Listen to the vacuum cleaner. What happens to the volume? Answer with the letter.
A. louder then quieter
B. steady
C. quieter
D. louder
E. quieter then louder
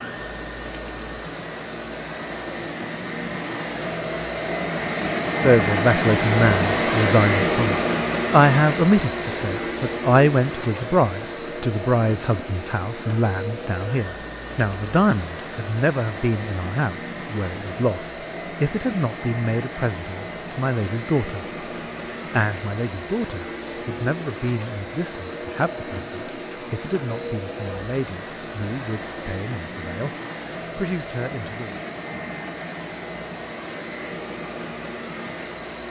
C.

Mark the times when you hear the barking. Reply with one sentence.
You can't hear the barking here.